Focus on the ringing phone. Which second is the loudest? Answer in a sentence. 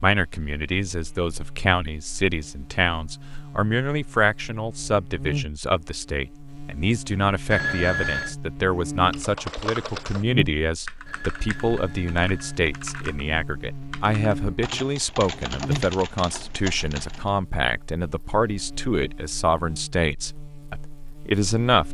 The volume of the ringing phone peaks at 8 seconds.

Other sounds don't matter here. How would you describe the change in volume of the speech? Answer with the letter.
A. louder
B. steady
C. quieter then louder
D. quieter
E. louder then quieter
B.